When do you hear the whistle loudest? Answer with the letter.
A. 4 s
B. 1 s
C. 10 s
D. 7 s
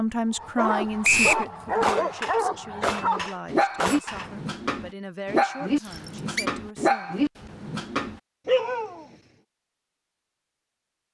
B.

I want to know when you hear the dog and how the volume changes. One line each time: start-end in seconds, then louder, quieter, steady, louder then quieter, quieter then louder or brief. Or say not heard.
0.3-9.1 steady.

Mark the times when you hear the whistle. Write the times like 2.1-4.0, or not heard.
1.0-1.4, 5.8-6.5.